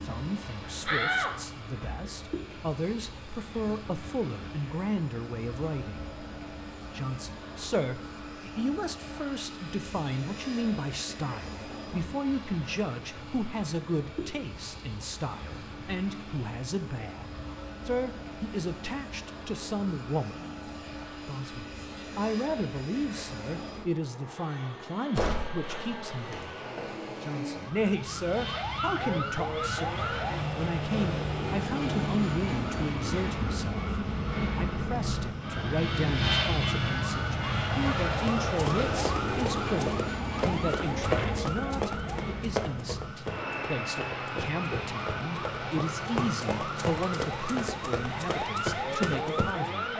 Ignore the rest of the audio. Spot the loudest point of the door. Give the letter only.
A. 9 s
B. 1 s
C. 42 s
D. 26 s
B.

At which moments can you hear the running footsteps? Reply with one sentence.
The running footsteps can be heard from 38.1 to 49.7 s.